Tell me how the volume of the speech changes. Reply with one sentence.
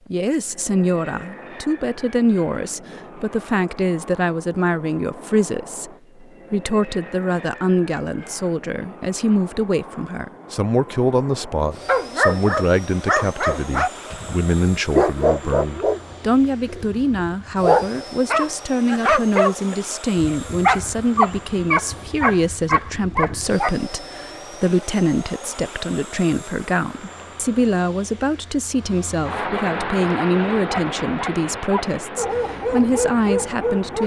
The loudness of the speech stays about the same.